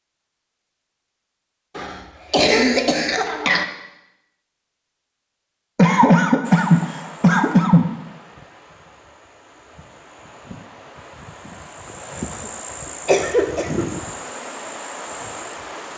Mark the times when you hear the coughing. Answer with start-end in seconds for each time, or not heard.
1.8-3.6, 5.8-7.9, 13.1-13.9.